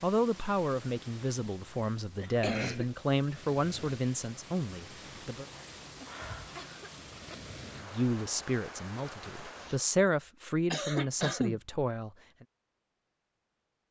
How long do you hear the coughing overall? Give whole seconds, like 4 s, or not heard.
2 s.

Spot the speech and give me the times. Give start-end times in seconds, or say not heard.
0.0-5.5, 7.8-12.4.